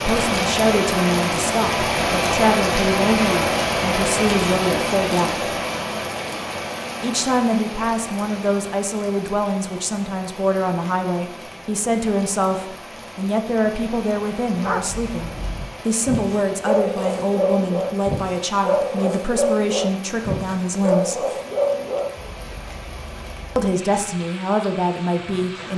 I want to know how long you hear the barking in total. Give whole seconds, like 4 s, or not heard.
9 s.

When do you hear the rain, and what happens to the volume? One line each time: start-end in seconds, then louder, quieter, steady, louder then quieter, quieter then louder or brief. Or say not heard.
0.0-25.7 quieter.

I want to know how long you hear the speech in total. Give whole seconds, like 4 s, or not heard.
22 s.